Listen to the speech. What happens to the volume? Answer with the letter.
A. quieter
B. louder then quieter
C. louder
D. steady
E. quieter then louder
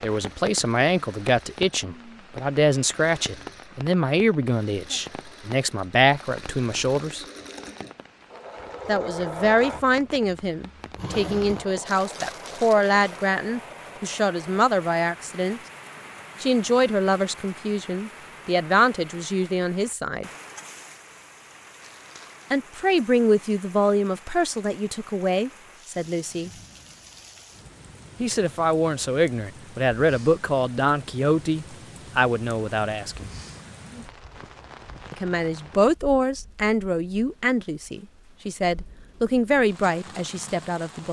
D.